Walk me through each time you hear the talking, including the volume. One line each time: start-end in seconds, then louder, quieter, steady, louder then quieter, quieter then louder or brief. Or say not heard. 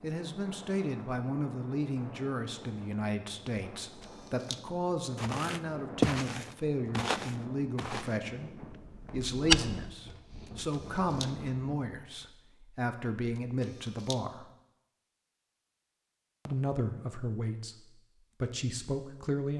0.0-14.4 steady
16.4-17.8 brief
18.4-19.5 brief.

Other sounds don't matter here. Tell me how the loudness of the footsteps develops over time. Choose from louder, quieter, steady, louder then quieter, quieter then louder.
quieter.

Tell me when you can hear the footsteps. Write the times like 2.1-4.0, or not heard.
5.2-9.9.